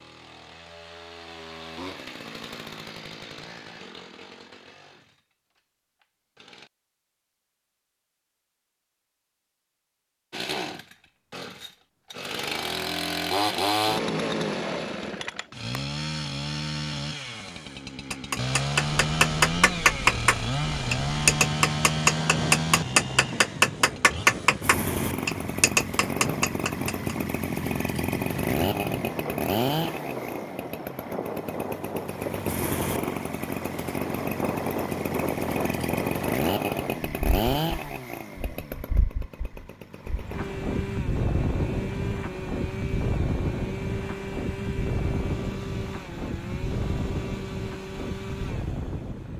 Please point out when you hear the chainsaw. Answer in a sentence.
You can hear the chainsaw from 0.0 to 6.7 s and from 10.3 to 49.3 s.